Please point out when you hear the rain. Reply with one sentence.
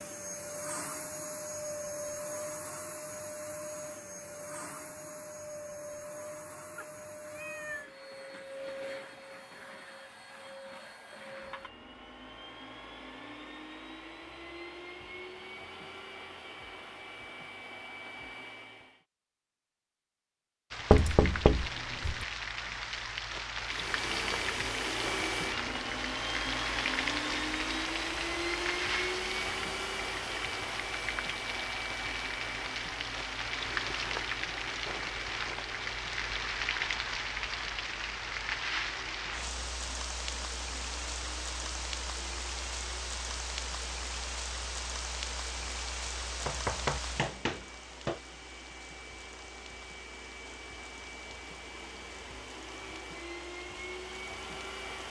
You can hear the rain from 20.7 to 55.0 s.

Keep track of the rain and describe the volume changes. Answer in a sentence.
The loudness of the rain goes down.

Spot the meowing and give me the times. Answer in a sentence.
You can hear the meowing from 6.8 to 7.9 s.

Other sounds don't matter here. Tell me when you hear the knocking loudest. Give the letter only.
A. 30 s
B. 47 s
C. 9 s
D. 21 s
D.